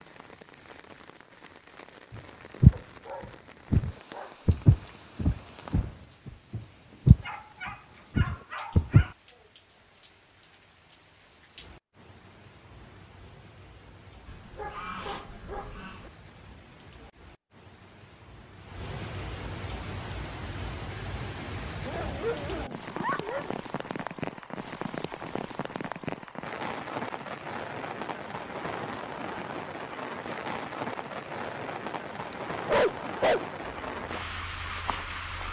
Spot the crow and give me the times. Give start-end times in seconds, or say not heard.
not heard.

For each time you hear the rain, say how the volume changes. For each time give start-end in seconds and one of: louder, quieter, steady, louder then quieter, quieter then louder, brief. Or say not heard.
0.0-35.4 louder.